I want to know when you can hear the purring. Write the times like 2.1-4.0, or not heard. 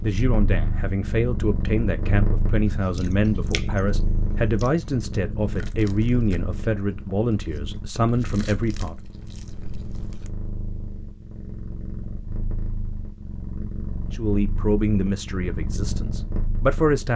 0.0-17.1.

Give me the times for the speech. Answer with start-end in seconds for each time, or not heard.
0.0-8.9, 14.1-17.1.